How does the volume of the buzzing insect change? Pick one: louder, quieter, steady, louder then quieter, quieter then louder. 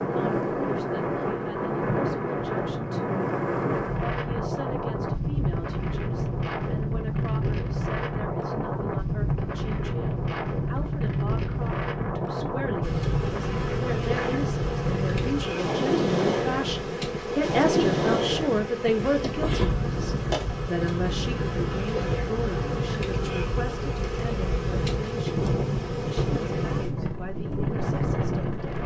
steady.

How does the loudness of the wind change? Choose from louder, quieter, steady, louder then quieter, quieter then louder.
steady.